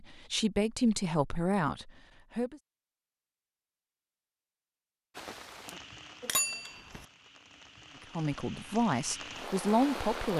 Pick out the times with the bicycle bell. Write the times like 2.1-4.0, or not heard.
6.2-7.0.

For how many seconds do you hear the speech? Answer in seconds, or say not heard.
5 s.